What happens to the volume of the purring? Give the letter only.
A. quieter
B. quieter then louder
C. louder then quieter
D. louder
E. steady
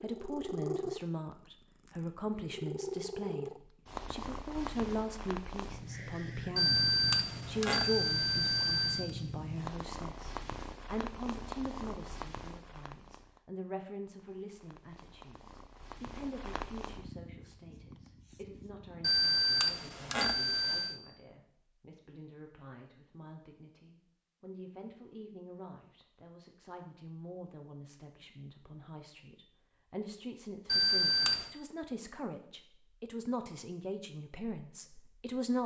A.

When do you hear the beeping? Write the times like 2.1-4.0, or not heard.
6.5-9.1, 19.0-20.9, 30.6-31.4.